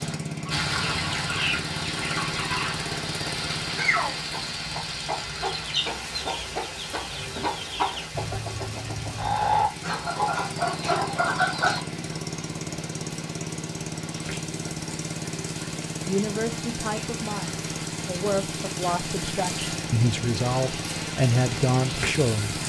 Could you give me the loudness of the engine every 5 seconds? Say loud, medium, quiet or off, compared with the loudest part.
loud, medium, loud, loud, loud.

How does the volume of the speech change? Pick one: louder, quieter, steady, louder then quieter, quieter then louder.
louder.